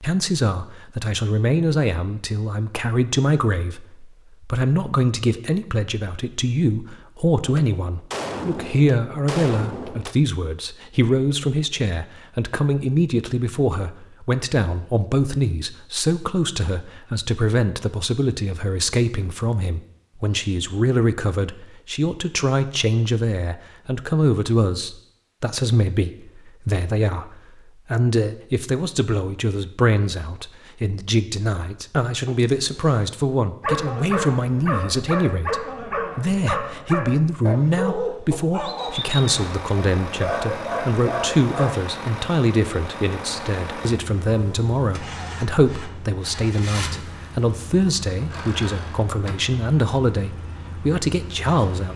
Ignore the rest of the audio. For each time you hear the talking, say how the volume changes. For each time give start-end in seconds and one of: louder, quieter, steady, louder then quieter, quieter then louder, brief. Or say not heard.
0.0-51.9 steady.